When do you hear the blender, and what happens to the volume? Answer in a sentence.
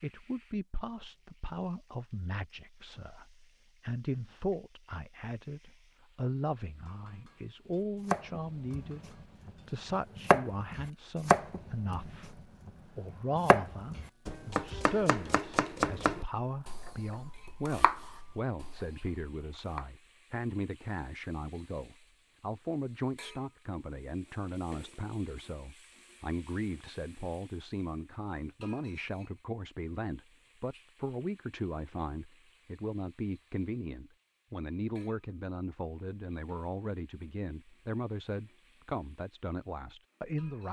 The blender can't be heard in this clip.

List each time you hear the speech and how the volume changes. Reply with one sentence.
You can hear the speech from 0.0 to 40.6 s, at a steady volume.